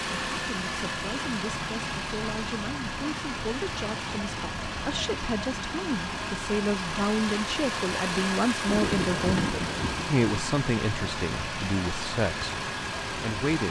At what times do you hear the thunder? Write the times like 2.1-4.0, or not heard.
8.7-10.1.